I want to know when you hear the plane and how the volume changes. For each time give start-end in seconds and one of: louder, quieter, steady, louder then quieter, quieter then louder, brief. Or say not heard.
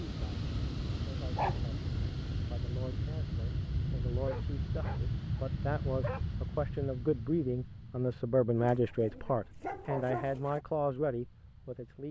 0.0-12.0 quieter.